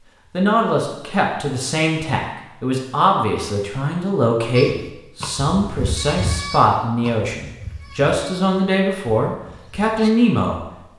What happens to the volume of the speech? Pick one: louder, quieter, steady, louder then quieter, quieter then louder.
steady.